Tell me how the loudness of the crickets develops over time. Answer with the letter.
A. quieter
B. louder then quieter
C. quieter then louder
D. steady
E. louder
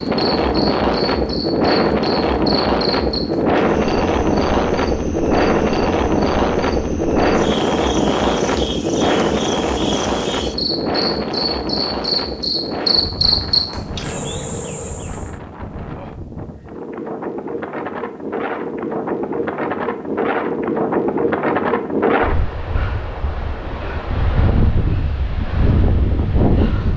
C.